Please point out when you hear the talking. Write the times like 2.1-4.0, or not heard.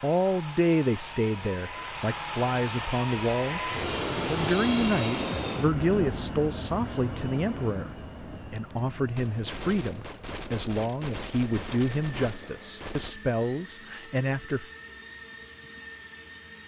0.0-7.9, 8.5-14.7.